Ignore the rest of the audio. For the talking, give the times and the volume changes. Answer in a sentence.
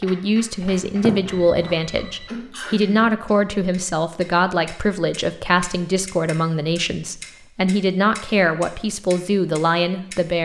You can hear the talking from 0.0 to 10.4 s, at a steady volume.